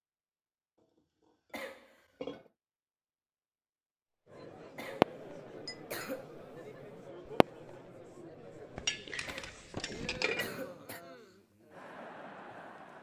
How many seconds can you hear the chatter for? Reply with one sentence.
You can hear the chatter for 9 seconds altogether.